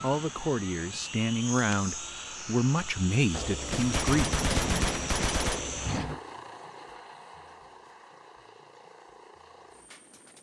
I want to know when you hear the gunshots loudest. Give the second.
5 s.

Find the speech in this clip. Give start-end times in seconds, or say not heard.
0.0-4.2.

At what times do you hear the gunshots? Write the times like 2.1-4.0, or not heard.
3.3-6.2.